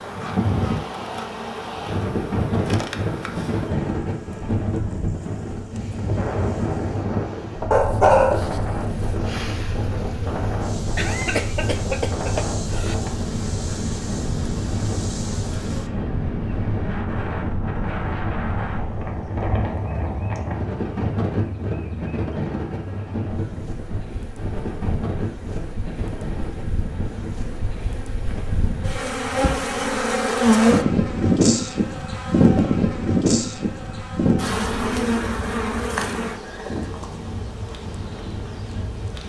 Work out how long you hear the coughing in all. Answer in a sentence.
The coughing can be heard for 2 seconds in total.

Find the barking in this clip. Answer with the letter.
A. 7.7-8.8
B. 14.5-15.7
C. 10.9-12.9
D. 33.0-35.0
A.